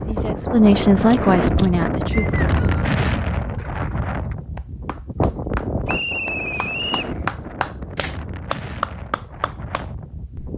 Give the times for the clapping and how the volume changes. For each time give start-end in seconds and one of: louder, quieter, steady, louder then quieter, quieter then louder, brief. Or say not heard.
3.5-10.5 louder then quieter.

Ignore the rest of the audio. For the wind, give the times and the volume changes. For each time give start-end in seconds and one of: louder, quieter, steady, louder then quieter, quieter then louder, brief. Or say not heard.
0.0-10.5 quieter.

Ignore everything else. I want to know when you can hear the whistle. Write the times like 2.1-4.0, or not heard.
2.1-2.9, 5.8-7.2.